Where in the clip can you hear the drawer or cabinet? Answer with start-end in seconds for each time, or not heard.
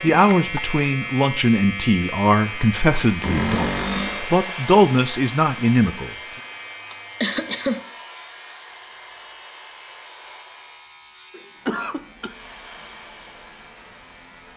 3.2-4.3.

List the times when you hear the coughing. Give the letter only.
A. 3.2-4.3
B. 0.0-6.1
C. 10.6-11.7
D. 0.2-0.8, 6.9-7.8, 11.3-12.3
D.